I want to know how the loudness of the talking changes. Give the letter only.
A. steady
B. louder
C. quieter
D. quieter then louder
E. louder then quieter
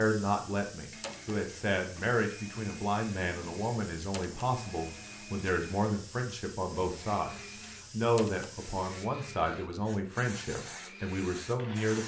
A.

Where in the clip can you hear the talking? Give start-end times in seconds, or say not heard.
0.0-12.0.